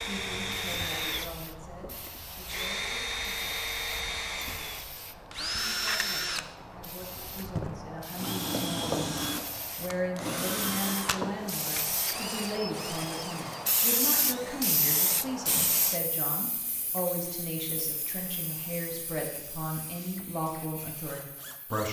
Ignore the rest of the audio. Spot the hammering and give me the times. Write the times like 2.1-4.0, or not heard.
not heard.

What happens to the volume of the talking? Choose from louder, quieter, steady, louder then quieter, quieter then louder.
louder.